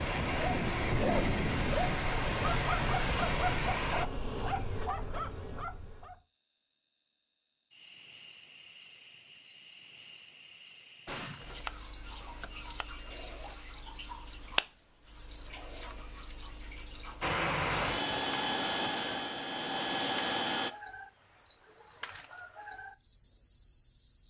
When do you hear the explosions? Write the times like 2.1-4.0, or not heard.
11.1-11.7.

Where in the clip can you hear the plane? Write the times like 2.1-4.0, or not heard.
0.0-4.0, 17.2-20.7.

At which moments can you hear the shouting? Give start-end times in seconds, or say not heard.
not heard.